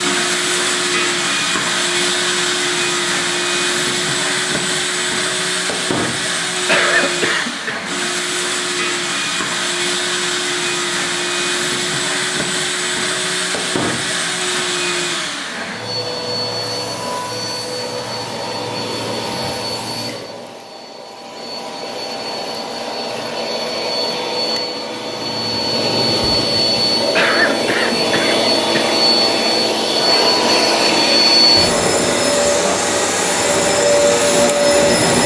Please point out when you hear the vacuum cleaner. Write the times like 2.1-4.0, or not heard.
0.0-35.2.